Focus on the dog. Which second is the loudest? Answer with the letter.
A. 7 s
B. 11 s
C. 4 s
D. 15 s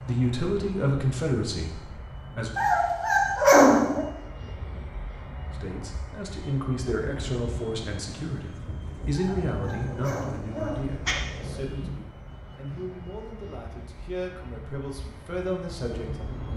C.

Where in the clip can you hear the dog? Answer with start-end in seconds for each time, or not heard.
2.5-4.0, 9.2-11.2.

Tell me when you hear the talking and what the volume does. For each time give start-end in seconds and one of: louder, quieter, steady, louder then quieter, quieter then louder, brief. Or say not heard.
0.1-2.5 brief
5.5-16.5 quieter then louder.